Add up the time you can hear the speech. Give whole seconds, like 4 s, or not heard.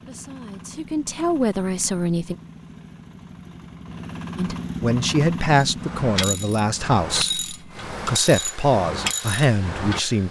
8 s.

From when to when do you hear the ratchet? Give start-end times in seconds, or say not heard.
5.6-10.2.